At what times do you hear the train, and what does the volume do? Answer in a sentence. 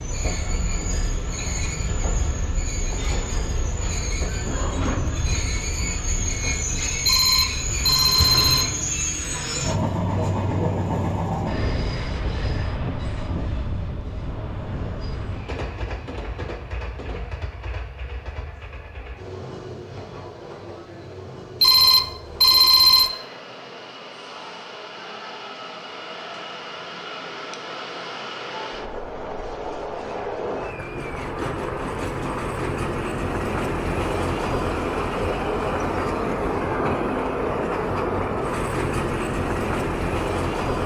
You can hear the train from 0.0 to 40.8 s, getting quieter then louder.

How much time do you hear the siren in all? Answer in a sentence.
You can't hear the siren here.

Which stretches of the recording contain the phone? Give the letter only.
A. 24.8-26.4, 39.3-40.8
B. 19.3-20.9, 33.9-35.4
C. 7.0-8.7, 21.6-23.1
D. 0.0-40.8
C.